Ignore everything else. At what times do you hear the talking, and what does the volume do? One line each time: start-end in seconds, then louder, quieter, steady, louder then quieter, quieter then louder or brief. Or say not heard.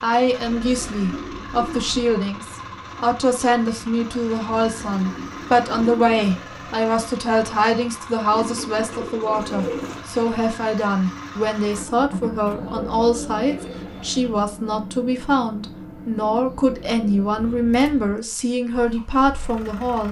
0.0-20.0 steady.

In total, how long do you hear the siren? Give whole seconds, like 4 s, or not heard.
not heard.